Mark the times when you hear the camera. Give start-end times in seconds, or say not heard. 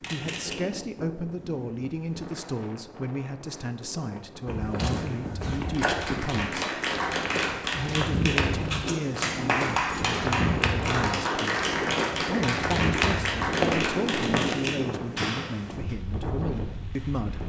0.0-0.6, 14.2-14.7.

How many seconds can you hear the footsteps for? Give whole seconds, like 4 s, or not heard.
10 s.